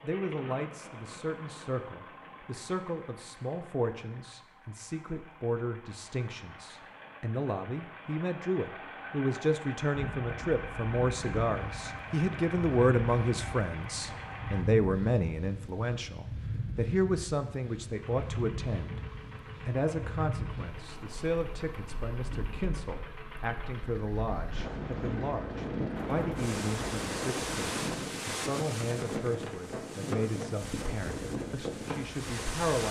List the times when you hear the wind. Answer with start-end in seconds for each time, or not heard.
9.9-32.8.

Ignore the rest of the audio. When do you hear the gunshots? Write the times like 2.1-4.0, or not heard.
25.9-27.9.